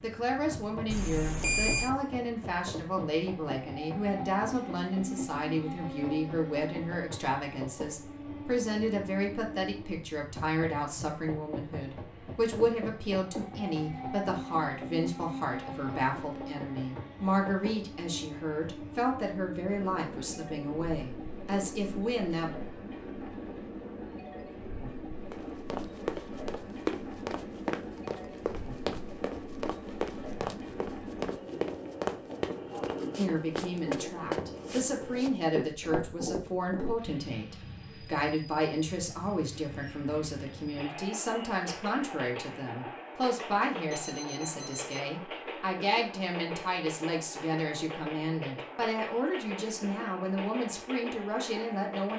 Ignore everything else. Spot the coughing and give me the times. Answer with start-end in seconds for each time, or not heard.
not heard.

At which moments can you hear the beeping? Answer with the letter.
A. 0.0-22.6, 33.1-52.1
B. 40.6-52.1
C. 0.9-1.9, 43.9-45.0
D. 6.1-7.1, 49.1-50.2
C.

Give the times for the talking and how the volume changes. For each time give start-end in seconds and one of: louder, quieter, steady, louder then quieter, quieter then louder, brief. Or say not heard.
0.0-22.6 steady
33.1-52.1 steady.